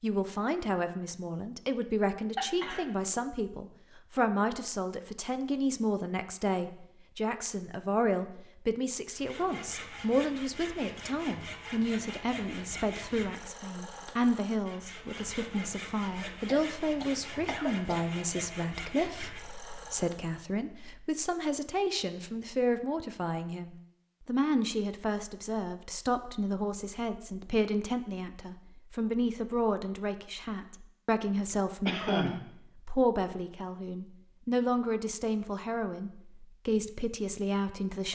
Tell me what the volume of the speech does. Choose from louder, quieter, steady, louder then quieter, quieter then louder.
steady.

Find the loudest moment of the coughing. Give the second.
32 s.